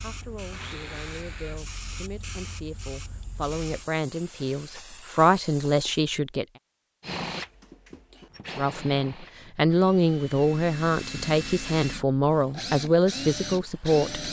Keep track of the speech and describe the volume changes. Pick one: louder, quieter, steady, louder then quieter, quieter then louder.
louder.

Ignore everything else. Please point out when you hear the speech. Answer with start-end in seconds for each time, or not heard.
0.0-6.5, 8.6-14.2.